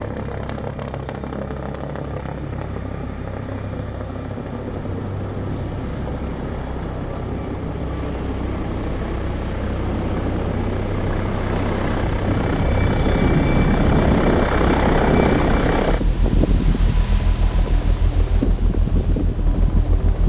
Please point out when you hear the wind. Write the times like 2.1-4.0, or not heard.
4.7-20.2.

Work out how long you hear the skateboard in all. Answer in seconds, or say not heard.
not heard.